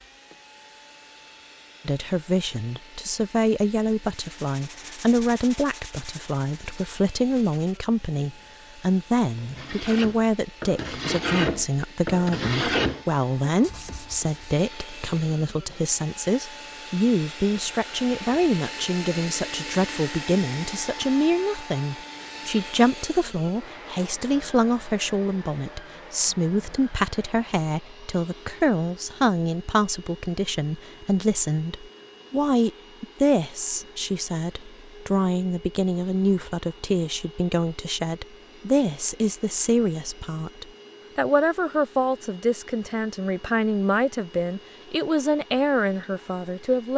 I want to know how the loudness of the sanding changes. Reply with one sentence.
The volume of the sanding goes down, then up.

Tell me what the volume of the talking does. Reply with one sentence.
The volume of the talking stays about the same.